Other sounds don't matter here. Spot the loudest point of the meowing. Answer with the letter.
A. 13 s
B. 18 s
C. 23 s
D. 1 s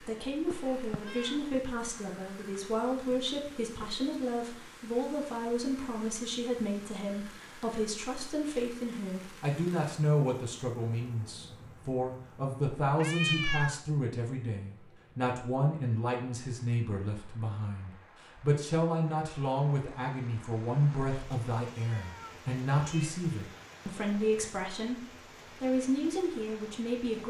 A.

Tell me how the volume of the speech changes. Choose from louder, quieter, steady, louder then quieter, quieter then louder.
steady.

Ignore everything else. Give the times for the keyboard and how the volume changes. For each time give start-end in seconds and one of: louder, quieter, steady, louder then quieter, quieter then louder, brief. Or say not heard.
not heard.